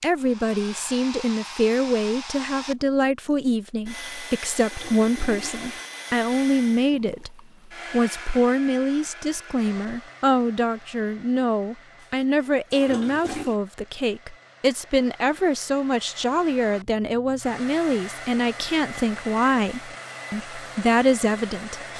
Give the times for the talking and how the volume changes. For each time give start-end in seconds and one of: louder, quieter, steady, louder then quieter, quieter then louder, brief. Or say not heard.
0.0-21.9 steady.